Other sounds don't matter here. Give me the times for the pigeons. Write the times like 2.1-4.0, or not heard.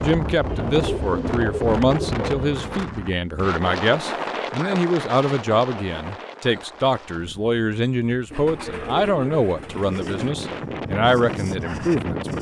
0.5-2.9, 8.3-10.3.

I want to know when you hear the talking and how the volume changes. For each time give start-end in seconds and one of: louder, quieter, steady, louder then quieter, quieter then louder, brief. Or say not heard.
0.0-12.3 steady.